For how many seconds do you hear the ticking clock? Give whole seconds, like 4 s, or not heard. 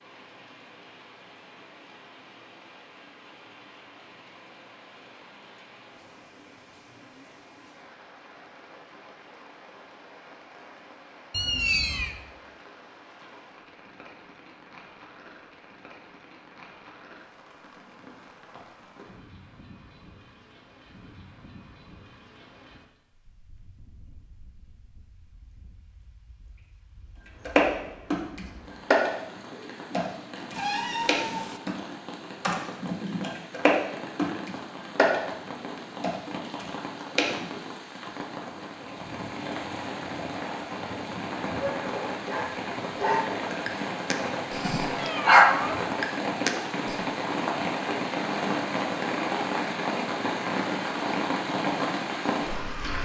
not heard.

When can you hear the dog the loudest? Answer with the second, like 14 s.
45 s.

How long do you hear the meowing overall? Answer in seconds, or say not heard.
3 s.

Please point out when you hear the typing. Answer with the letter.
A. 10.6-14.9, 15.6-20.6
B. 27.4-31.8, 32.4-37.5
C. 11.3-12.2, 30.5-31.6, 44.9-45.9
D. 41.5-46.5
B.